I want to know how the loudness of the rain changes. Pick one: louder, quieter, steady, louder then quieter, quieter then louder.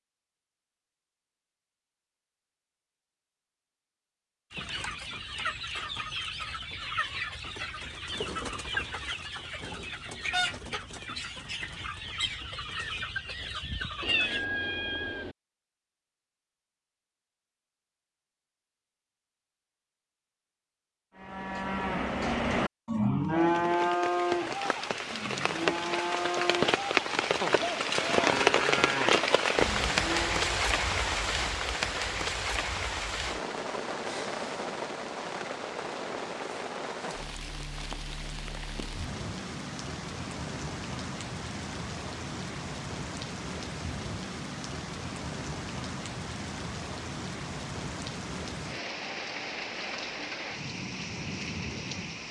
quieter.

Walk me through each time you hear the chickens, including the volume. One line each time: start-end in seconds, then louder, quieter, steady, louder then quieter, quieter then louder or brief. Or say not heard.
4.5-14.4 steady.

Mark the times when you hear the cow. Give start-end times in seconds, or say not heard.
21.1-30.6.